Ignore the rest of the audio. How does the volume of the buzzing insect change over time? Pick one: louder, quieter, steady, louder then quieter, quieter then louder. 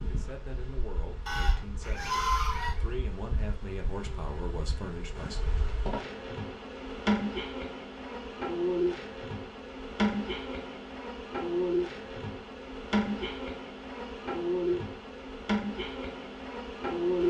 louder.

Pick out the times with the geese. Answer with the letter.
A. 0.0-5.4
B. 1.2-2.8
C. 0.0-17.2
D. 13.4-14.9
B.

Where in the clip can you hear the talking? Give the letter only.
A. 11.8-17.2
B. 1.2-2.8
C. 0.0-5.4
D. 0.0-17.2
C.